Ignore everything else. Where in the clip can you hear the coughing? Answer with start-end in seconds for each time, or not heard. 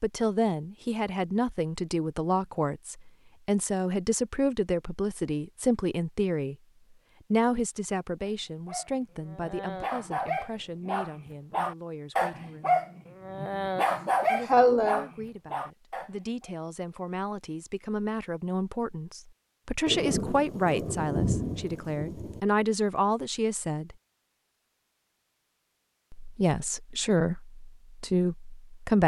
13.8-15.1.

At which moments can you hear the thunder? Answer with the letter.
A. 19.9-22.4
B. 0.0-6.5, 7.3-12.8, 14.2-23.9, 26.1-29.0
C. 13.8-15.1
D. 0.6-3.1
A.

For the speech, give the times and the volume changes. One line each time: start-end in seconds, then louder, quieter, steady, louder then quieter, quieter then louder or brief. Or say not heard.
0.0-6.5 steady
7.3-12.8 quieter
14.2-23.9 louder
26.1-29.0 brief.